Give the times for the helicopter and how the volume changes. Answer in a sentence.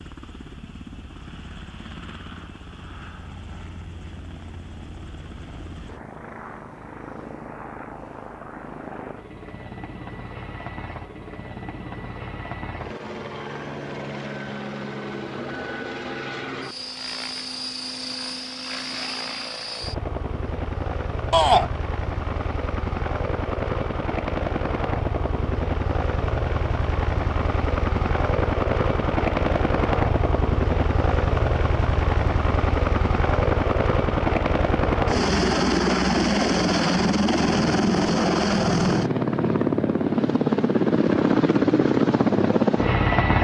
You can hear the helicopter from 0.0 to 43.3 s, getting louder.